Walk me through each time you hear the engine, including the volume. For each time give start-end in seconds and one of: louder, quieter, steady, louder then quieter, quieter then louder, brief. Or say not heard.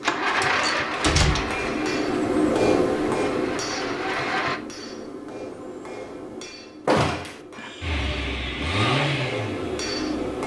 0.0-4.6 quieter then louder
7.5-10.4 brief.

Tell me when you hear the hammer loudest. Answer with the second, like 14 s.
3 s.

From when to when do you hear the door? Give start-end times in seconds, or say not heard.
0.2-1.6, 6.8-7.4.